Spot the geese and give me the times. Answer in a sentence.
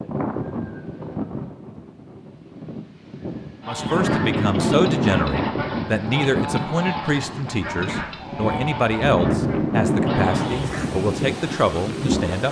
You can hear the geese from 3.6 to 10.7 s.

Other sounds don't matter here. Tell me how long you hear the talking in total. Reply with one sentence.
The talking can be heard for 9 seconds in total.